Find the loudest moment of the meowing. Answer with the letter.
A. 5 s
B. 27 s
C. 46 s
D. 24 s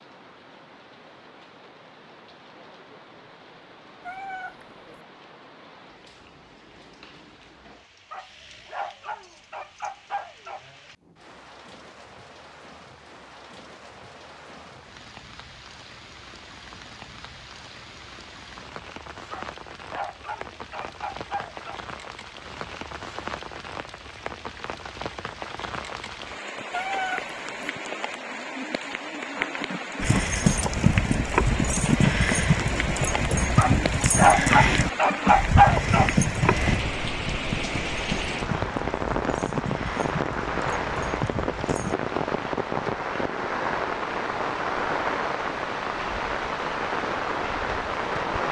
B.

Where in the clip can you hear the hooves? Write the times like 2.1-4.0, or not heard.
30.0-42.0.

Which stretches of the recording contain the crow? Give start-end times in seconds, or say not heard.
not heard.